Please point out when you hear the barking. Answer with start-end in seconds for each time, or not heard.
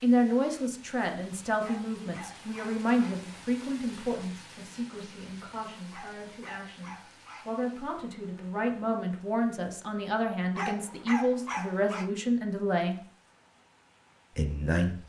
1.6-3.2, 5.9-7.7, 10.6-12.1.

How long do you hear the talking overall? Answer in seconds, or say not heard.
14 s.